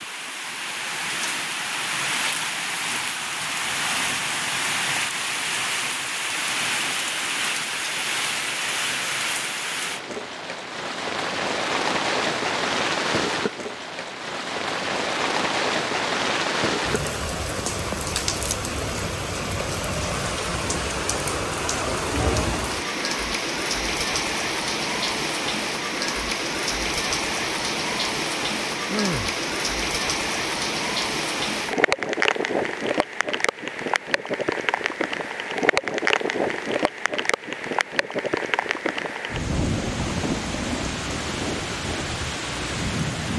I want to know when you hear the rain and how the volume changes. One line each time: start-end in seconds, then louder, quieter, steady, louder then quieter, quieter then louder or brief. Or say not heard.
0.0-43.3 steady.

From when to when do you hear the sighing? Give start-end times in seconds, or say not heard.
28.9-29.4.